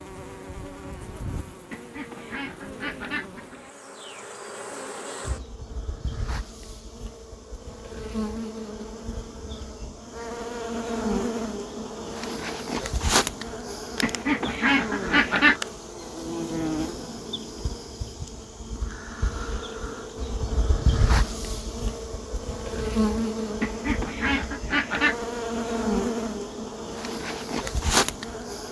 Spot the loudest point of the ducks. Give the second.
15 s.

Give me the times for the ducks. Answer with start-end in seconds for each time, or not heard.
1.7-3.7, 14.0-15.6, 23.6-25.1.